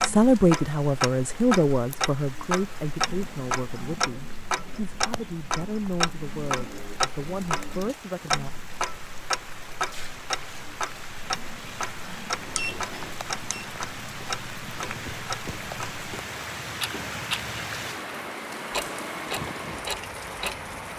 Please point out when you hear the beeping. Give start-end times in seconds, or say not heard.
12.3-13.7.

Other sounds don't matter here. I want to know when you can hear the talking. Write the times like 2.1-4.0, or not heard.
0.0-8.5.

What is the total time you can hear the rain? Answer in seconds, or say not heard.
21 s.